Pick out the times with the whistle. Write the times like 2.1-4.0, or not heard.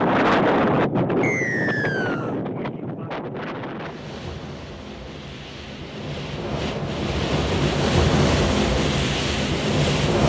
1.2-2.4.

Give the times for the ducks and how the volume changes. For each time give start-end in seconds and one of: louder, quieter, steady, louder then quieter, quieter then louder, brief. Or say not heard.
not heard.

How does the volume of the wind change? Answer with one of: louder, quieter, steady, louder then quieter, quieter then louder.
quieter then louder.